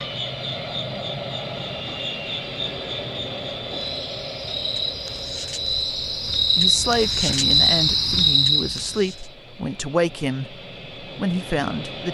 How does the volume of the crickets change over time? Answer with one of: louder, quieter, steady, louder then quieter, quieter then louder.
louder.